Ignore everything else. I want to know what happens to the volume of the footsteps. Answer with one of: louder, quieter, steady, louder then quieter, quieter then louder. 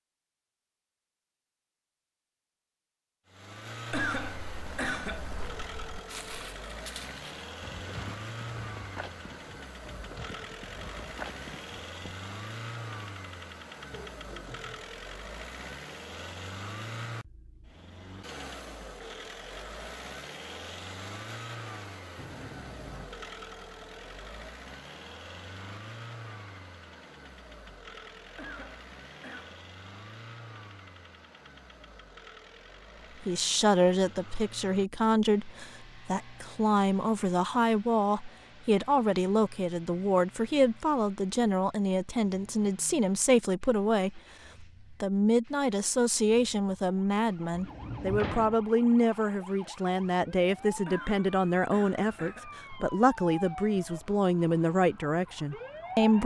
steady.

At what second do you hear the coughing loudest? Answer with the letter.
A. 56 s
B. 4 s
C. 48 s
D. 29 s
B.